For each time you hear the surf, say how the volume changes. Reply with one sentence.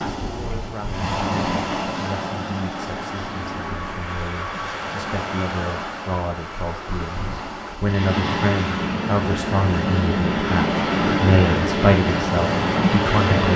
You can hear the surf from 0.0 to 13.5 s, getting quieter then louder.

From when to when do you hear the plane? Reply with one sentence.
You can hear the plane from 2.7 to 7.8 s.